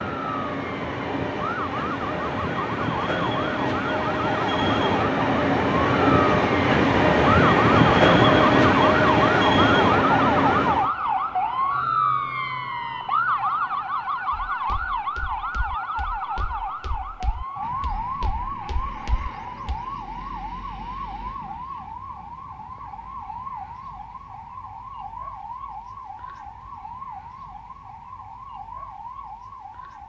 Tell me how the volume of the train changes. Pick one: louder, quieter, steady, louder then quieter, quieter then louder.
louder.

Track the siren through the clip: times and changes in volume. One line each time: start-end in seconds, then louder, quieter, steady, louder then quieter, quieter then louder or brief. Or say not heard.
0.0-30.0 louder then quieter.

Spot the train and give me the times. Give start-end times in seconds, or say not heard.
0.0-10.9.